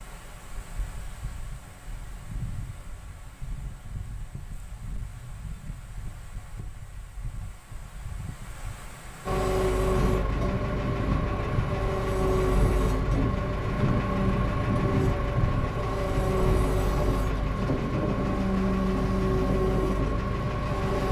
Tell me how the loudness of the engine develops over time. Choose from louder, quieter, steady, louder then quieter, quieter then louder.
steady.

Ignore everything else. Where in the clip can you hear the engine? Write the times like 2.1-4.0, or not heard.
9.2-21.0.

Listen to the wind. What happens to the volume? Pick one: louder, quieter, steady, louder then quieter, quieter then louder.
louder.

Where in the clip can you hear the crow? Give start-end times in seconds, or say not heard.
not heard.